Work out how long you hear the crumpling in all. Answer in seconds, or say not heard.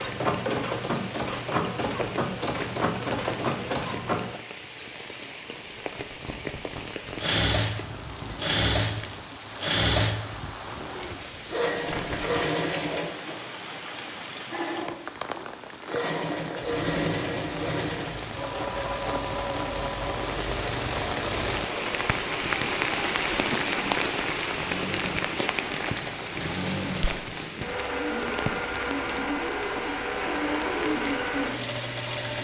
5 s.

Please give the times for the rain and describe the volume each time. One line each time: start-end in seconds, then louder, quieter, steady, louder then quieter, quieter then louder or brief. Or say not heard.
0.0-32.3 louder then quieter.